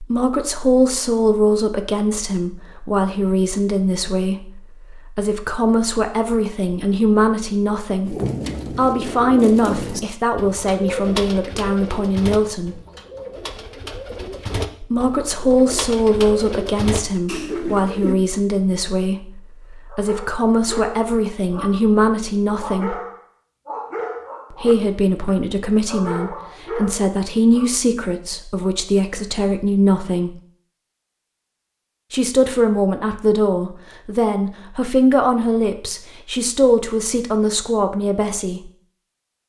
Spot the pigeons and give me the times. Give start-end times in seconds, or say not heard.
8.1-18.1.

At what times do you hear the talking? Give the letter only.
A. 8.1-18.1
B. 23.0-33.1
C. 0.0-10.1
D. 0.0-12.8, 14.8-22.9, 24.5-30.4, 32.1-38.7
D.